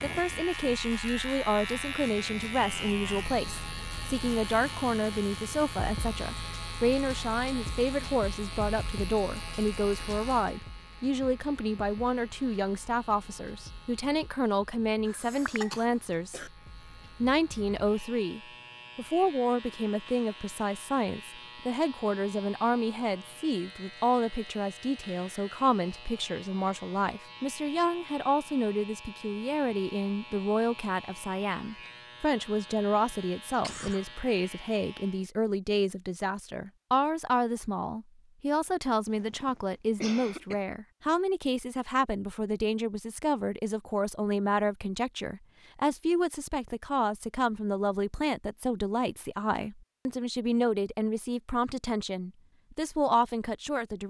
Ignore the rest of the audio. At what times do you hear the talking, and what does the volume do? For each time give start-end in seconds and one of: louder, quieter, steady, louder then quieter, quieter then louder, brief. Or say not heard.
0.0-16.5 steady
17.2-54.0 steady.